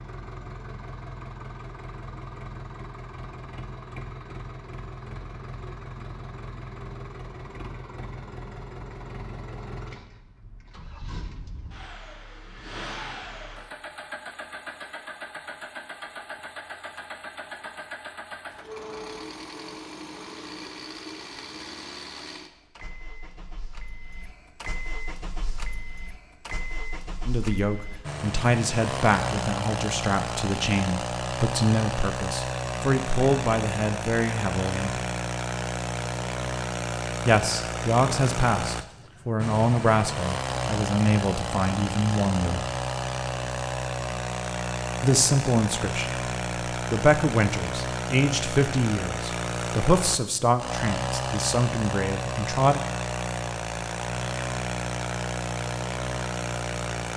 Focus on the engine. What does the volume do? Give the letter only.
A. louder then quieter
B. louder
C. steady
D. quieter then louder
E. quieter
B.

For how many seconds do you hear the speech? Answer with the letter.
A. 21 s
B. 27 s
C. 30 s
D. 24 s
A.